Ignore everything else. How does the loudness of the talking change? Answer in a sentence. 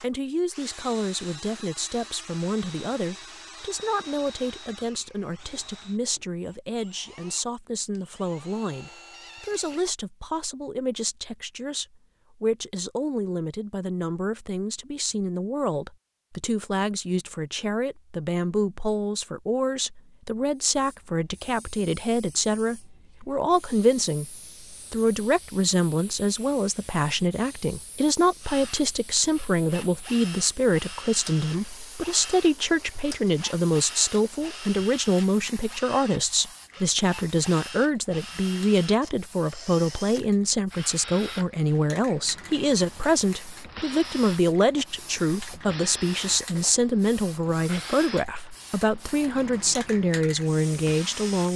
The loudness of the talking goes up.